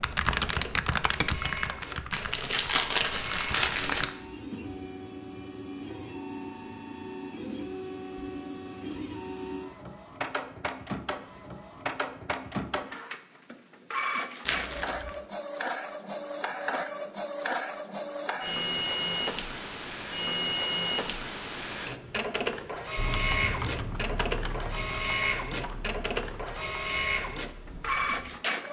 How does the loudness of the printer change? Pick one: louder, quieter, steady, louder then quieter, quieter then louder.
louder.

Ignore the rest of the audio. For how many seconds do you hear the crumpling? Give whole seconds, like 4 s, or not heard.
3 s.